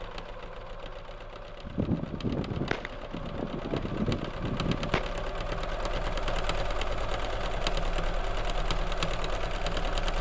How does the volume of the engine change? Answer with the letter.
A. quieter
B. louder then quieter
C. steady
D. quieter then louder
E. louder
E.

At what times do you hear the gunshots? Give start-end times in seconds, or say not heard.
1.6-5.2.